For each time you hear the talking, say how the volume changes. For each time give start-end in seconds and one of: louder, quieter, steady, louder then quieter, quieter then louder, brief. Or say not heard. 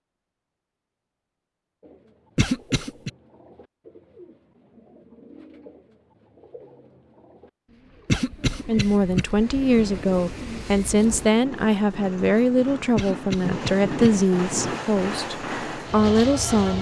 8.7-16.7 steady.